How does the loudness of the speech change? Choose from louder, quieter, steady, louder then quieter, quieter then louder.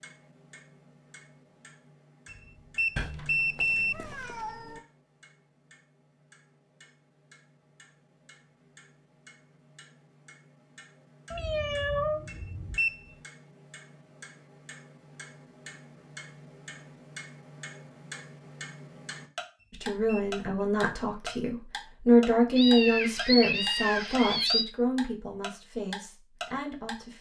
louder then quieter.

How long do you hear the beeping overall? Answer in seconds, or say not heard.
3 s.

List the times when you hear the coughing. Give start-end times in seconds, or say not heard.
not heard.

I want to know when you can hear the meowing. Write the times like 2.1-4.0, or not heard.
3.0-4.8, 11.3-12.8, 22.6-24.7.